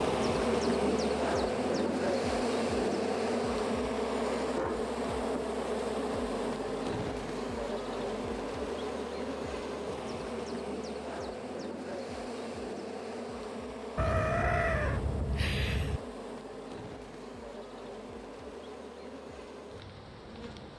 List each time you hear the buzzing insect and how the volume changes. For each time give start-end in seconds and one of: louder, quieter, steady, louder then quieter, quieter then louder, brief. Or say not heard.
0.0-20.7 quieter.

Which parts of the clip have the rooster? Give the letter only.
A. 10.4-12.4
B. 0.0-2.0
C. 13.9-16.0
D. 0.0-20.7
C.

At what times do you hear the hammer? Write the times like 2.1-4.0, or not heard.
not heard.